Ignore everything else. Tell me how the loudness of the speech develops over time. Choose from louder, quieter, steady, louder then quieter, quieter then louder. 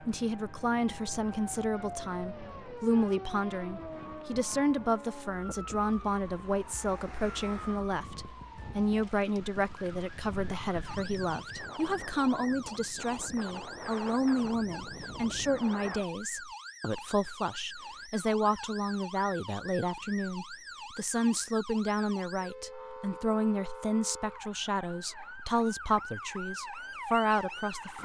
steady.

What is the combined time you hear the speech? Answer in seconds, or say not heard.
28 s.